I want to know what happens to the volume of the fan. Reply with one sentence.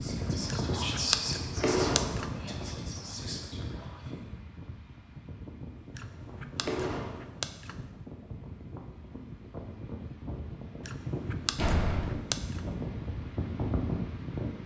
The loudness of the fan goes down, then up.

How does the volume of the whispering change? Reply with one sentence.
The loudness of the whispering goes down.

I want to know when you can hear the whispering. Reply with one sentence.
You can hear the whispering from 0.0 to 4.3 s.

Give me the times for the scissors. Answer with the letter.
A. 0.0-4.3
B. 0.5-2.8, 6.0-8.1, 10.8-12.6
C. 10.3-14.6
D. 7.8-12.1
B.